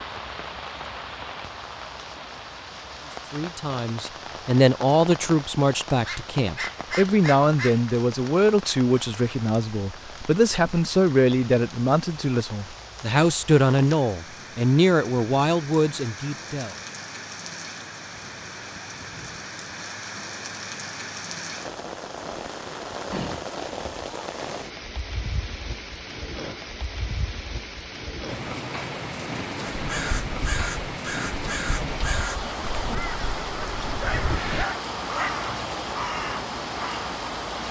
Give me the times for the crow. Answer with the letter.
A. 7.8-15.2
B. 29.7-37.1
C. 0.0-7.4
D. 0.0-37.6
B.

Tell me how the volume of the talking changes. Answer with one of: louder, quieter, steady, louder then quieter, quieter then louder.
steady.